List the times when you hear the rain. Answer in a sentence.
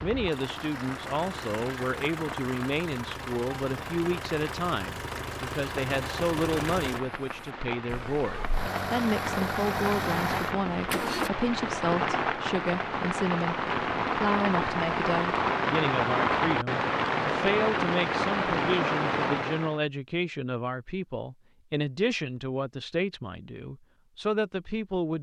The rain can be heard from 0.0 to 19.8 s.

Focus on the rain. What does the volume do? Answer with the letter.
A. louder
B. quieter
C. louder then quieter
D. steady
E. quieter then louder
A.